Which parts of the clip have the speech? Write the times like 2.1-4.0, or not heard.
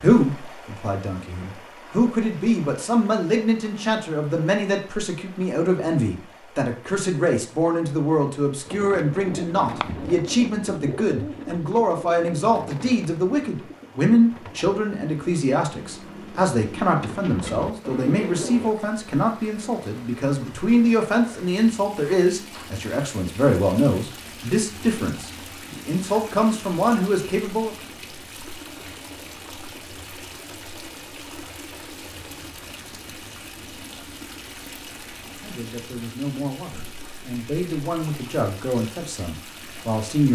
0.0-27.8, 35.4-40.3.